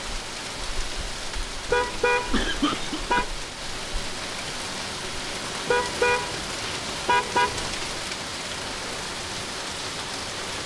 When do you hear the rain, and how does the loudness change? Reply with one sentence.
You can hear the rain from 0.0 to 10.6 s, at a steady volume.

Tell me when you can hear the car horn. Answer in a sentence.
You can hear the car horn from 1.6 to 3.3 s and from 5.7 to 7.8 s.